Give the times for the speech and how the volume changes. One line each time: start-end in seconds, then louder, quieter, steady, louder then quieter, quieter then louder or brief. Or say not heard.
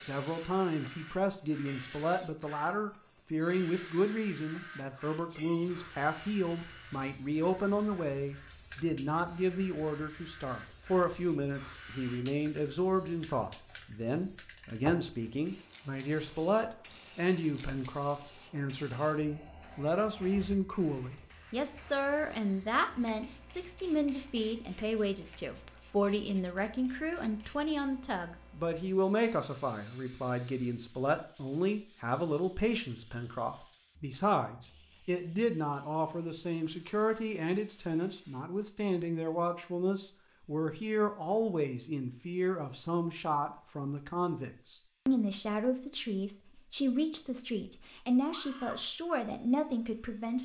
0.0-50.4 steady.